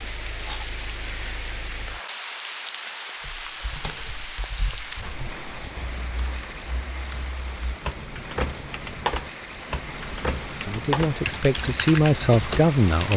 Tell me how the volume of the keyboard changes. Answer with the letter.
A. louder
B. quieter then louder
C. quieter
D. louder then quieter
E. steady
A.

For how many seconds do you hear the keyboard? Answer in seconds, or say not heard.
10 s.